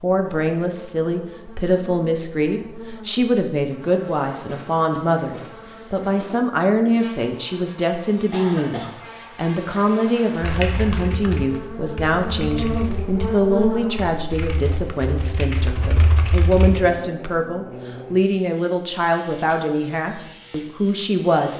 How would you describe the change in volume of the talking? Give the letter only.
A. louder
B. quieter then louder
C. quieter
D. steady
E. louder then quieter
D.